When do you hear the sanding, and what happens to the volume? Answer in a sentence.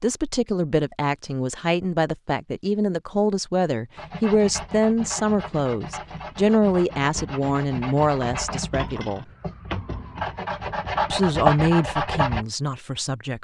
You can hear the sanding from 4.0 to 12.4 s, getting louder.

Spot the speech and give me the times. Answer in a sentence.
The speech can be heard from 0.0 to 9.2 s and from 11.1 to 13.3 s.